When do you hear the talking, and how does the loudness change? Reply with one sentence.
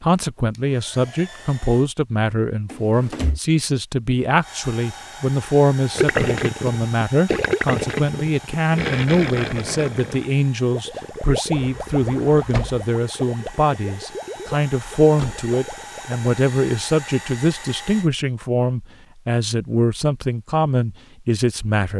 The talking can be heard from 0.0 to 21.9 s, at a steady volume.